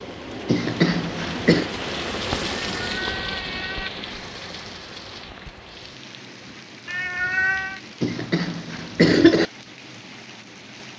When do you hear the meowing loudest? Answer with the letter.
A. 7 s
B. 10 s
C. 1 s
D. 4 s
A.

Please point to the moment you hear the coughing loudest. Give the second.
9 s.